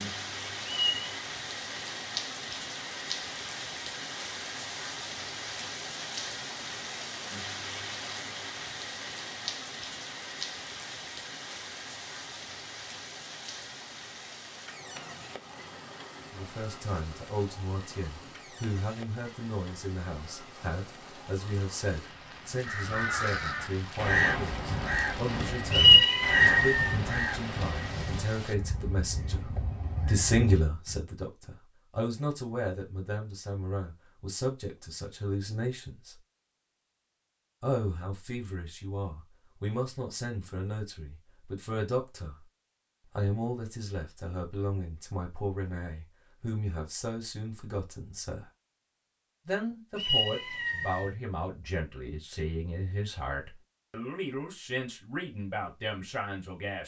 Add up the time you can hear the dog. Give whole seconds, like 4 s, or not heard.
not heard.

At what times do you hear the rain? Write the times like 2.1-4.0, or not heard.
0.0-28.6.